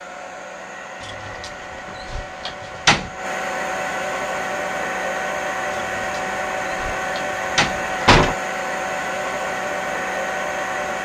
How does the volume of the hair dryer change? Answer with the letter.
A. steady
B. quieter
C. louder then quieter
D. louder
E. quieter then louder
D.